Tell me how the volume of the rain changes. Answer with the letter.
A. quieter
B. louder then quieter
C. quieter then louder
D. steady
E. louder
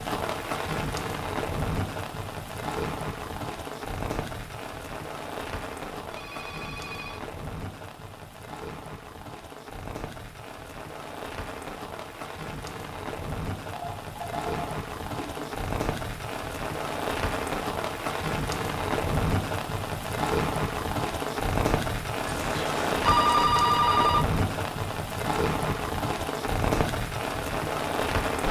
C.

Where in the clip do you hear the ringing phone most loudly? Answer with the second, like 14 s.
23 s.